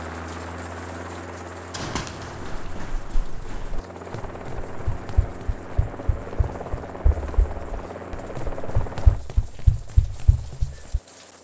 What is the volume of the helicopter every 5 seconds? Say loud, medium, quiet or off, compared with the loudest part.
loud, loud, quiet.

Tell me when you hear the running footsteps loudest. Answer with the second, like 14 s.
10 s.